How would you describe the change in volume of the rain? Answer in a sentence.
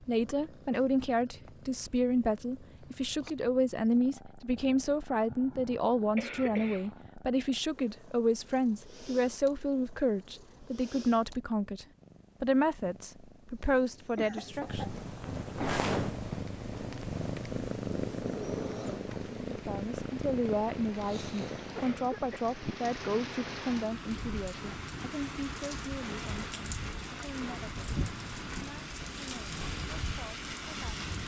The loudness of the rain goes up.